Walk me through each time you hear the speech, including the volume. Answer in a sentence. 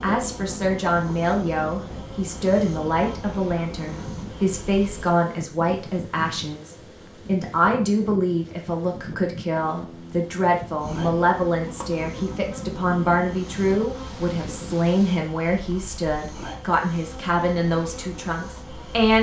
You can hear the speech from 0.0 to 19.1 s, at a steady volume.